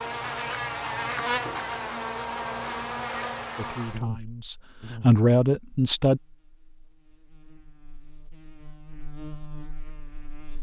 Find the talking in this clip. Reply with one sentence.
You can hear the talking from 3.5 to 6.2 s.